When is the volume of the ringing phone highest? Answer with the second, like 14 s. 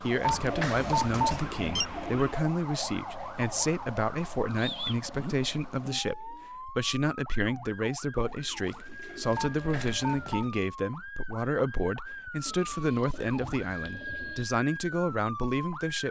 1 s.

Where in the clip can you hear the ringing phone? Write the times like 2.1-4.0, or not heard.
0.2-1.9, 9.3-10.5.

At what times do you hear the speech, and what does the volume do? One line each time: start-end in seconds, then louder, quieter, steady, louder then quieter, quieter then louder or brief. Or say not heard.
0.0-16.0 steady.